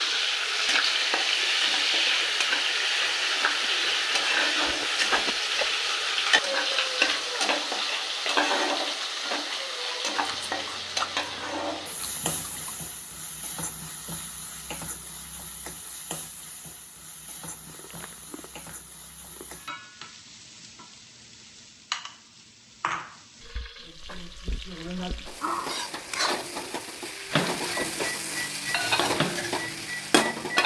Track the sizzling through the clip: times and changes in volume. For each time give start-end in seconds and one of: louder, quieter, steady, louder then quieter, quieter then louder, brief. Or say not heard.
0.0-30.6 quieter then louder.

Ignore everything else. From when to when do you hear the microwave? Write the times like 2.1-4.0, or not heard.
27.3-30.6.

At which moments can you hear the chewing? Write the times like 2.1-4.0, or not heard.
3.6-6.0, 10.2-12.8, 17.5-19.5, 24.9-26.3.